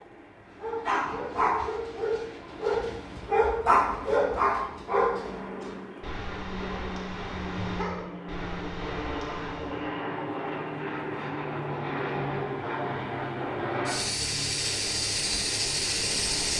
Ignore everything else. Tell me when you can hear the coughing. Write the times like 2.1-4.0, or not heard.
not heard.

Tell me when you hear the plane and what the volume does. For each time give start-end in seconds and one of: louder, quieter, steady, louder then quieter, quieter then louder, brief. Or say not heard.
0.0-16.5 louder.